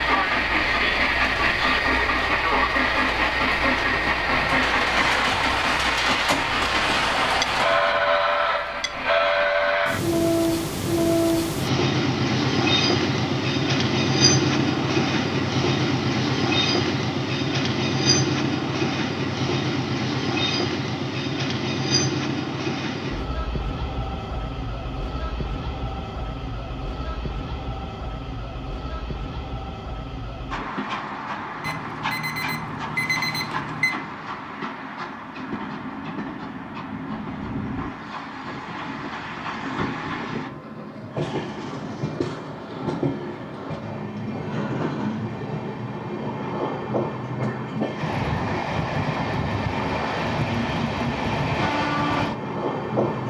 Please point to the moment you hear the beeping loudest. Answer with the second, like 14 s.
33 s.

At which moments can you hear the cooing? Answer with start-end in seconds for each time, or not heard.
not heard.